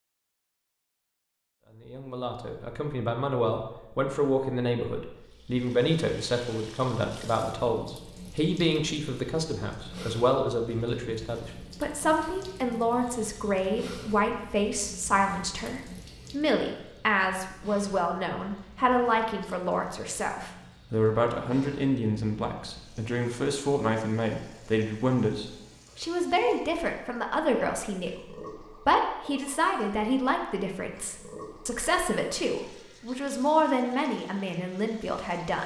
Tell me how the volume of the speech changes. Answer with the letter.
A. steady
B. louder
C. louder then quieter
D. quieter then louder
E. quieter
A.